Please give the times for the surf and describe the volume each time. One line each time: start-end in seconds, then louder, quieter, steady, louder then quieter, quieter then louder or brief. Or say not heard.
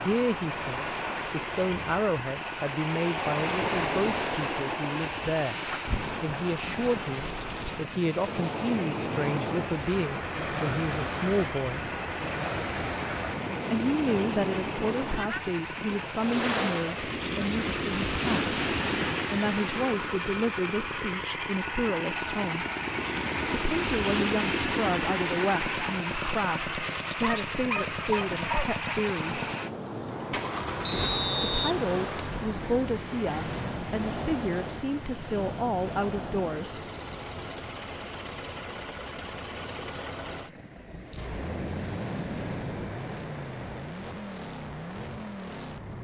0.0-45.9 quieter.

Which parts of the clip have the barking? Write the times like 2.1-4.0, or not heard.
27.2-28.8.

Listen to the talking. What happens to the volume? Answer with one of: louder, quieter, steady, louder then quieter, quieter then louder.
steady.